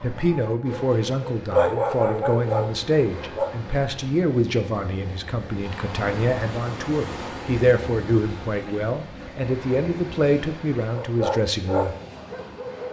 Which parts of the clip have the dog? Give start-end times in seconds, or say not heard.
0.0-3.5, 10.9-12.8.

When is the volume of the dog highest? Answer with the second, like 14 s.
2 s.